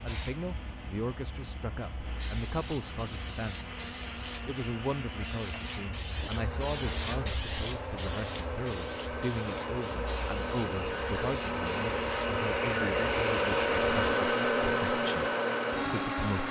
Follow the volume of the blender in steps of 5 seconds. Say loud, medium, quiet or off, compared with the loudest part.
quiet, medium, loud, loud.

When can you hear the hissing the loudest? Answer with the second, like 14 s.
7 s.